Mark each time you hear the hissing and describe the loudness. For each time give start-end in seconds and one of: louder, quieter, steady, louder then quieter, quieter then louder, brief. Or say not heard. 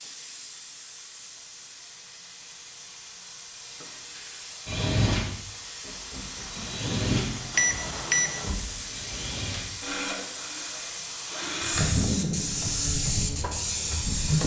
0.0-14.4 louder.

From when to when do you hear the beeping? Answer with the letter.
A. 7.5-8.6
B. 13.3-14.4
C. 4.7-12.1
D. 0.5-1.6
A.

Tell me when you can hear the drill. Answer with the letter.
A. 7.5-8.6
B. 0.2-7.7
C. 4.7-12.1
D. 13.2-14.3
C.